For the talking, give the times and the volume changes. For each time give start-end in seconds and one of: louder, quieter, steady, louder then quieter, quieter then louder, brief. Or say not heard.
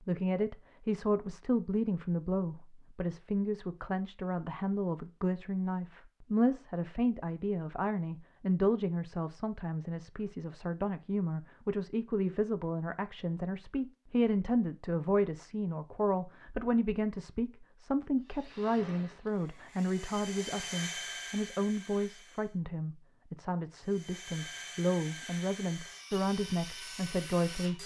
0.0-27.8 steady.